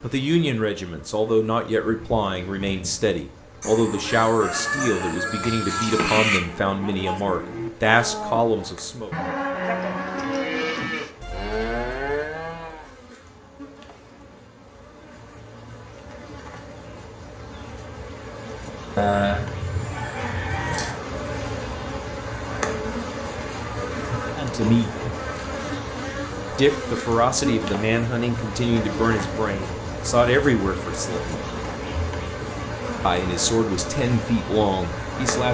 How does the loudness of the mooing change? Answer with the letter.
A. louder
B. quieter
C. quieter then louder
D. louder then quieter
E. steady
A.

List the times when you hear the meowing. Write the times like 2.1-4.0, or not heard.
not heard.